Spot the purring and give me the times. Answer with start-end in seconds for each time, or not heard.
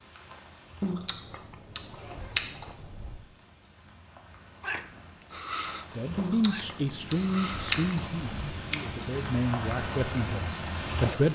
4.6-8.0.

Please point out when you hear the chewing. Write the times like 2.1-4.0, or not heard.
0.8-3.2, 6.2-8.8.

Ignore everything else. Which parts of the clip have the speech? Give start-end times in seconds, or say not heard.
5.9-11.3.